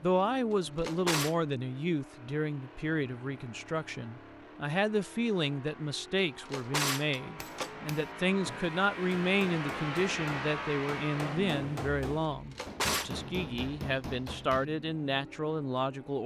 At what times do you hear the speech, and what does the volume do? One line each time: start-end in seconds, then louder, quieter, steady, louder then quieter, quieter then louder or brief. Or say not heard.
0.0-16.2 steady.